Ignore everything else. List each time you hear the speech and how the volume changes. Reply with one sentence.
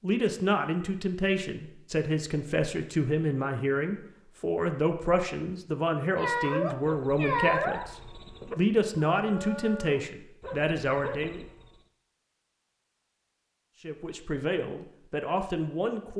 You can hear the speech from 0.0 to 11.4 s, at a steady volume; and briefly from 13.8 to 16.1 s.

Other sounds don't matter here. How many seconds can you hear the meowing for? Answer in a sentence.
The meowing can be heard for 2 seconds in total.